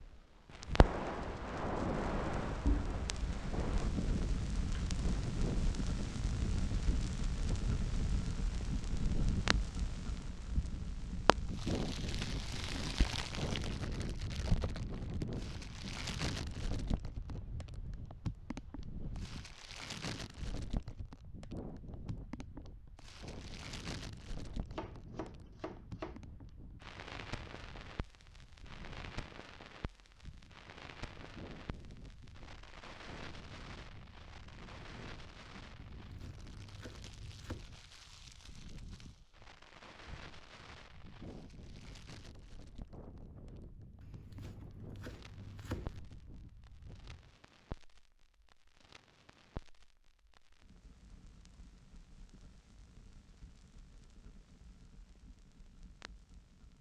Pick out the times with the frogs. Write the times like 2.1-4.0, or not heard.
not heard.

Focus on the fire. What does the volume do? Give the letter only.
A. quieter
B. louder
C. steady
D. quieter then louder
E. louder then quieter
A.